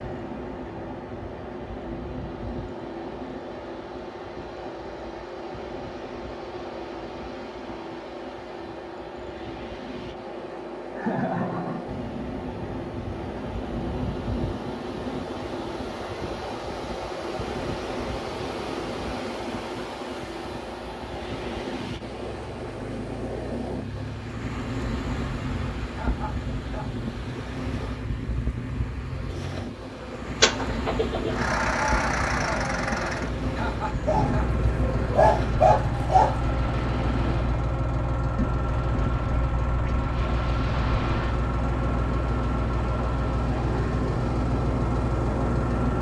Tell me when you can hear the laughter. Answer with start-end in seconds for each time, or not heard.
10.9-11.9, 25.9-26.9, 33.5-34.5.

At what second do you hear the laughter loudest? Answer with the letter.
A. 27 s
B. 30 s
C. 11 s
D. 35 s
C.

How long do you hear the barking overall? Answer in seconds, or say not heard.
2 s.